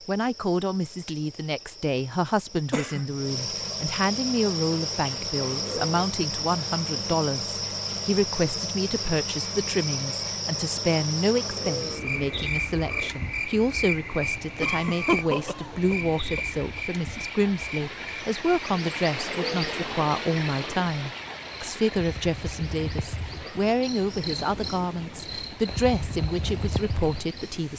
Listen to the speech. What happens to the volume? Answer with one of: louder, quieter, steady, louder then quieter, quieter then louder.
steady.